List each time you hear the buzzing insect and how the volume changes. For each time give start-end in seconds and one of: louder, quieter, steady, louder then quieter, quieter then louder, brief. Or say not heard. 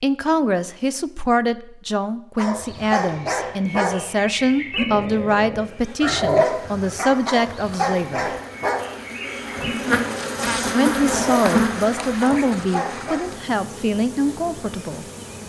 5.5-15.4 louder then quieter.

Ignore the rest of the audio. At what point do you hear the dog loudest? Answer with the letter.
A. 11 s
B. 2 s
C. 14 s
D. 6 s
D.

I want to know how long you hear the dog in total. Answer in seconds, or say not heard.
11 s.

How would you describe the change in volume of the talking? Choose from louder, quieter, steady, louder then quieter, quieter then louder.
steady.